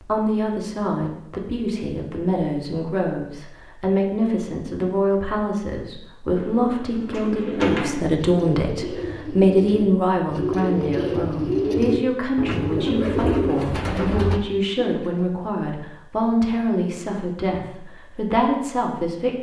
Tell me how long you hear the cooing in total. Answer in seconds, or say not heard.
9 s.